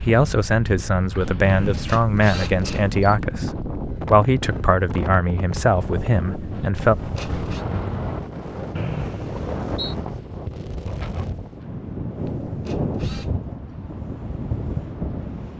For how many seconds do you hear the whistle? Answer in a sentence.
The whistle can be heard for 2 seconds in total.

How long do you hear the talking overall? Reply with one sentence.
The talking can be heard for 7 seconds in total.